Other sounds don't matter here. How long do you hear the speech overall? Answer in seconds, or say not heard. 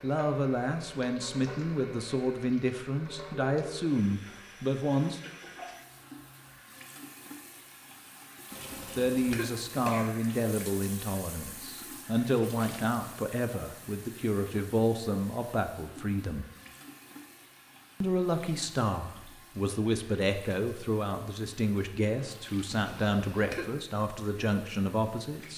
20 s.